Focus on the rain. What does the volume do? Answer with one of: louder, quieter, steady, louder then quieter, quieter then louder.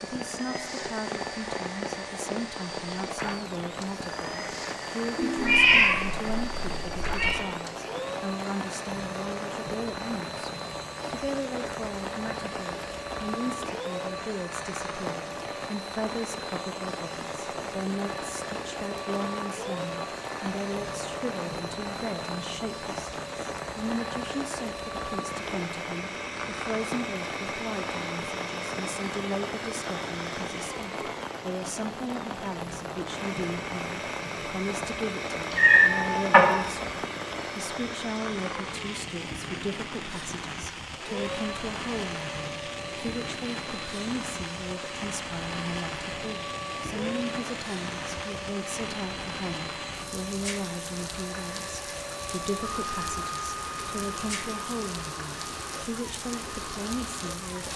steady.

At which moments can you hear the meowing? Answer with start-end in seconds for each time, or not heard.
5.3-7.3, 35.5-36.6.